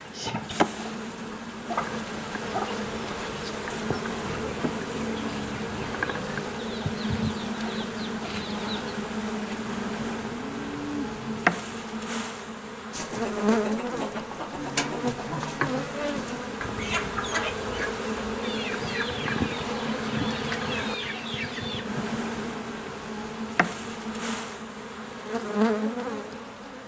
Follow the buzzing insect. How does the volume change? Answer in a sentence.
The loudness of the buzzing insect stays about the same.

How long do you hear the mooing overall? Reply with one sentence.
The mooing can be heard for 2 seconds in total.